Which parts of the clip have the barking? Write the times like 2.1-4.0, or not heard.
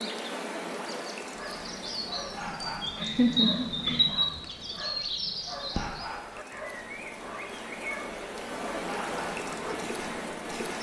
1.4-9.9.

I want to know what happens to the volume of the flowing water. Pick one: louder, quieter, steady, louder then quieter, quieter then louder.
quieter then louder.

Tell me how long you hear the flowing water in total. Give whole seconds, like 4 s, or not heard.
11 s.